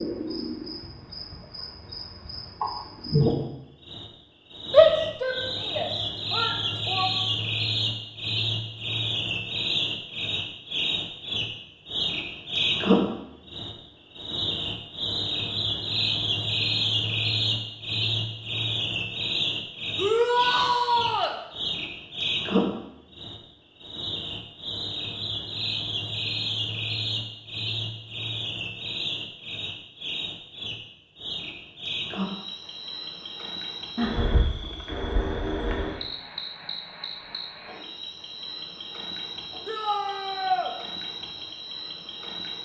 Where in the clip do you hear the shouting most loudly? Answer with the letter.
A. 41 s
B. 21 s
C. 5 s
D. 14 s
C.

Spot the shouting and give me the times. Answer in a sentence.
You can hear the shouting from 4.7 to 7.1 s, from 19.9 to 21.4 s and from 39.6 to 40.7 s.